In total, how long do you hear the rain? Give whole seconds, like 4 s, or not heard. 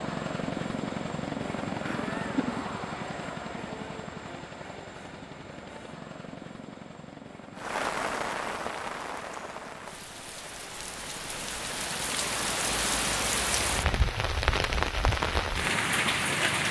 9 s.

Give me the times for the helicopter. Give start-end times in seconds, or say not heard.
0.0-14.0.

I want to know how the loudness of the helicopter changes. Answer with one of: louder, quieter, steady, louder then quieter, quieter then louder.
quieter then louder.